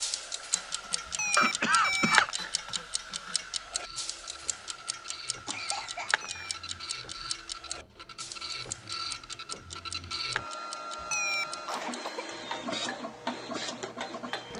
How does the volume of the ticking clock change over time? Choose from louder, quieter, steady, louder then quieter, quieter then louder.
quieter.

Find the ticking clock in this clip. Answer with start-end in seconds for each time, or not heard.
0.0-14.5.